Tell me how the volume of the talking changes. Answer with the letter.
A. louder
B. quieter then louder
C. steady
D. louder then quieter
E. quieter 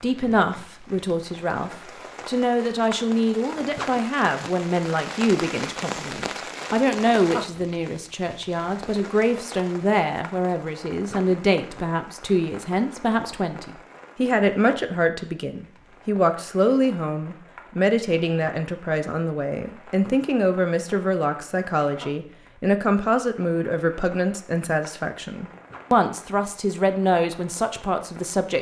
C.